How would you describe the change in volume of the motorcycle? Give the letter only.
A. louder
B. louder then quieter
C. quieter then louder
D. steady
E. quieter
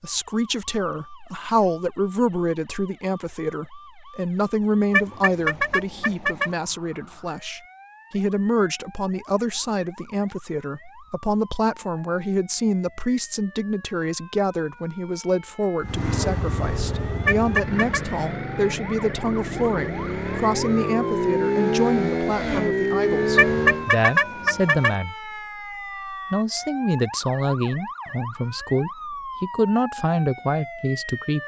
A.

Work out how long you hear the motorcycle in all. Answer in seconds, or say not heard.
8 s.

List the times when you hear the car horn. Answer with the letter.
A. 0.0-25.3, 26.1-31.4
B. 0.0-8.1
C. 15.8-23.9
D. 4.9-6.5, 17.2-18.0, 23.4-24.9
D.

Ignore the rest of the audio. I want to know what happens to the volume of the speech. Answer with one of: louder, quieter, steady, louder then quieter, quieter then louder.
steady.